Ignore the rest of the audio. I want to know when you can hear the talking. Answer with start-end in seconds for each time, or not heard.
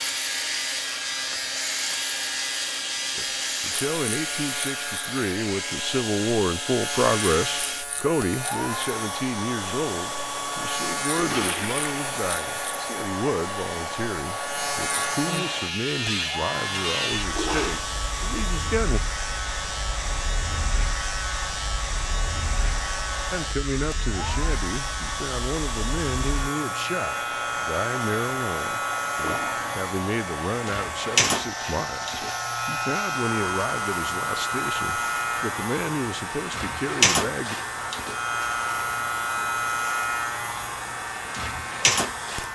3.1-19.0, 23.3-37.5.